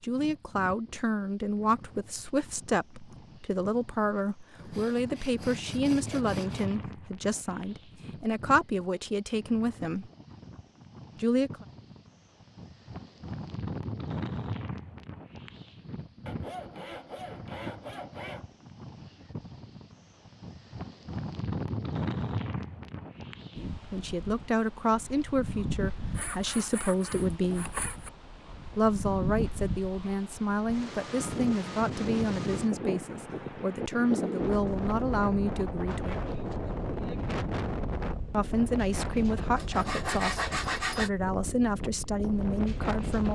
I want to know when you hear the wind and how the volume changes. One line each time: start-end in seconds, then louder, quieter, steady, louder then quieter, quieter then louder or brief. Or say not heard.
0.0-43.3 louder.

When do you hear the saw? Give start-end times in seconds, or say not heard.
4.5-6.7, 16.2-18.5, 26.1-28.1, 39.5-41.1.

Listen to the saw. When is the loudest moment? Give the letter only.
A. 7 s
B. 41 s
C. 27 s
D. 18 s
B.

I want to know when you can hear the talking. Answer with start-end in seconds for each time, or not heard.
0.0-10.1, 11.2-11.7, 23.6-27.8, 28.8-36.2, 38.3-43.3.